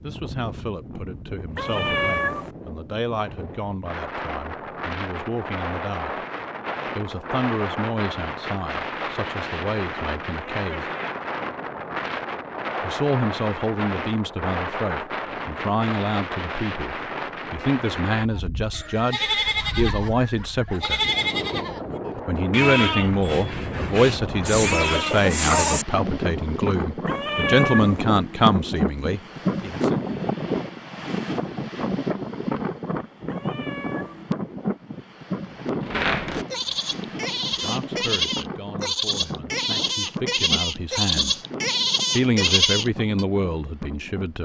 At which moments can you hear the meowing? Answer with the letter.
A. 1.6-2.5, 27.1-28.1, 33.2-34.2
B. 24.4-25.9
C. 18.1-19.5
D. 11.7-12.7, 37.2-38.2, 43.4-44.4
A.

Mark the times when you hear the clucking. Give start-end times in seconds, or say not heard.
24.4-25.9.